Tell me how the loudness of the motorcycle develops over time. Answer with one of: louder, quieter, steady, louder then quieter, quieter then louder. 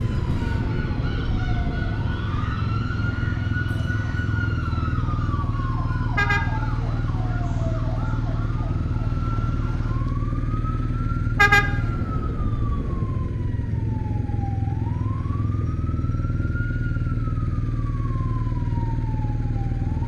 steady.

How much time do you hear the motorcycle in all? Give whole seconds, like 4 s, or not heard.
20 s.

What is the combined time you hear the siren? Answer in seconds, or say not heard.
20 s.